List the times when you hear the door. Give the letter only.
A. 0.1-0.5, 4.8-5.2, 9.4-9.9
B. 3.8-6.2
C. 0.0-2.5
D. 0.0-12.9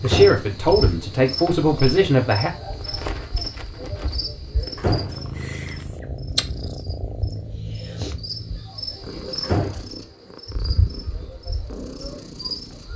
A.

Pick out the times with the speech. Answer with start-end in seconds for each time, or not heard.
0.0-2.5.